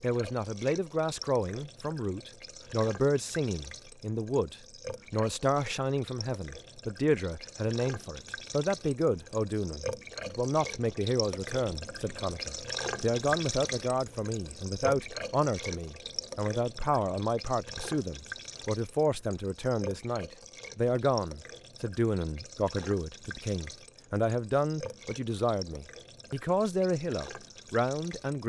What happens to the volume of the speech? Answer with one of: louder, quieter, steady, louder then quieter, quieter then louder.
steady.